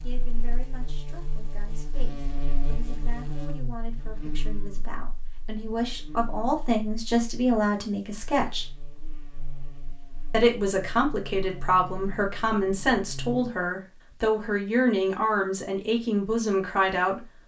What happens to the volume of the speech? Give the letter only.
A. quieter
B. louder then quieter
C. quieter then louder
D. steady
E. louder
E.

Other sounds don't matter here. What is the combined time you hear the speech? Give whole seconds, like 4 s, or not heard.
16 s.